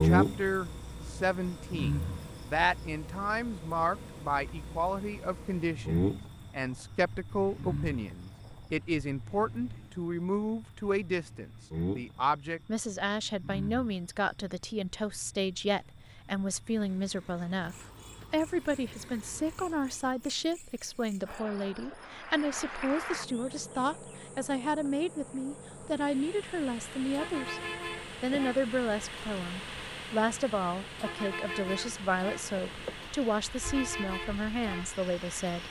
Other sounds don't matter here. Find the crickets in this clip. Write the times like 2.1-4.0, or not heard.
0.0-35.6.